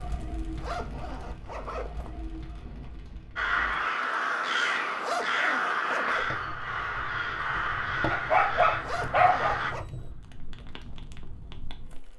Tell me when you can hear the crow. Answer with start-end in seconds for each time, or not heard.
3.4-9.8.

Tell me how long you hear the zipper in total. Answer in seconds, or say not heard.
4 s.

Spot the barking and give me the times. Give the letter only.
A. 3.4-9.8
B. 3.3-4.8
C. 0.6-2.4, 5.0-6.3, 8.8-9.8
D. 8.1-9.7
D.